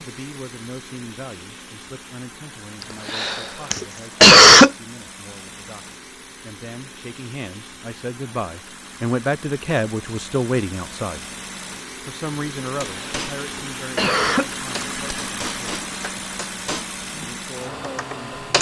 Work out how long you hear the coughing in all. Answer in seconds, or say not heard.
3 s.